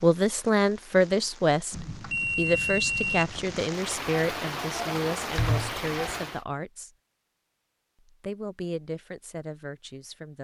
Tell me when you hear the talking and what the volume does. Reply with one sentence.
You can hear the talking from 0.0 to 6.9 s, getting quieter; and briefly from 8.1 to 10.3 s.